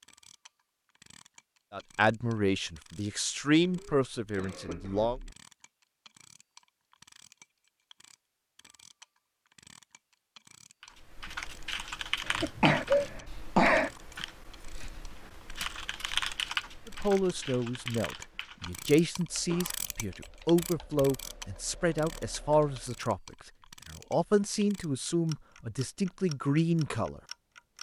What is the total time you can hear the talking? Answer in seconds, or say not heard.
14 s.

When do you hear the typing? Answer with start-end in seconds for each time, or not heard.
10.8-23.1.